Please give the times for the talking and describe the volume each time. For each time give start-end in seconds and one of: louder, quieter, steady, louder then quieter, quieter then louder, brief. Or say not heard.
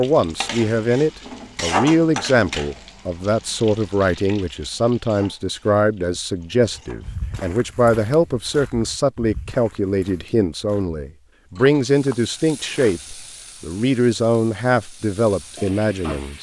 0.0-16.3 steady.